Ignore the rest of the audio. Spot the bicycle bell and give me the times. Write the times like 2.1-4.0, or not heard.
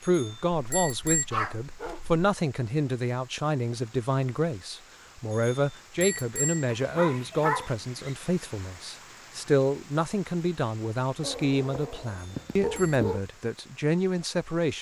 0.0-1.2, 5.3-6.7, 12.1-13.0.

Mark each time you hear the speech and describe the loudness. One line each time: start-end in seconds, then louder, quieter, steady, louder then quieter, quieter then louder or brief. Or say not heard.
0.0-14.7 steady.